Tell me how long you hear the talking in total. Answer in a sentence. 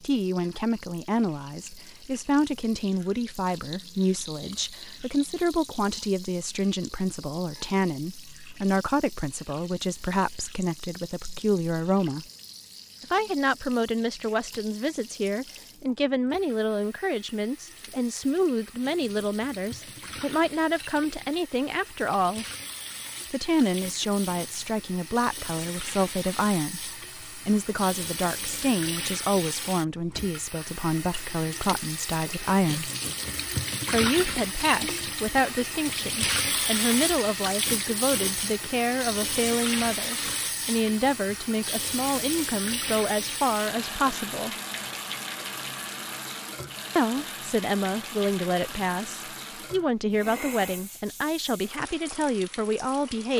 You can hear the talking for 48 seconds altogether.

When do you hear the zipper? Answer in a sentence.
You can't hear the zipper here.